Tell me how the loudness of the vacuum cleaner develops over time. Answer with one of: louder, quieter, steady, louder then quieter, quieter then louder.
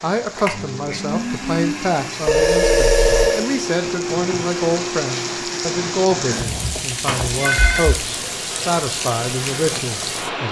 quieter.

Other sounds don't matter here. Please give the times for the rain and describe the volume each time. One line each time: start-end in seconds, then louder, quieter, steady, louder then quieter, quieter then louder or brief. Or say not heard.
0.0-10.4 louder.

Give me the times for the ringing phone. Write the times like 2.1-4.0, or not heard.
2.2-3.5, 6.5-8.0.